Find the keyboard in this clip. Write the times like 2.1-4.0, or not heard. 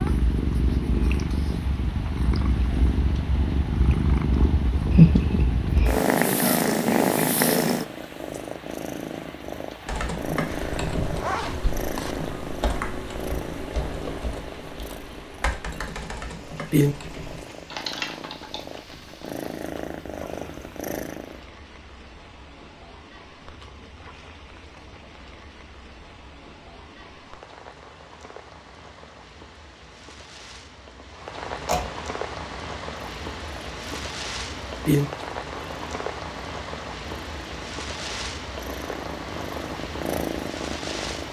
9.8-18.6.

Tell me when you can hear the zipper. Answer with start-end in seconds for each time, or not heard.
10.4-12.2.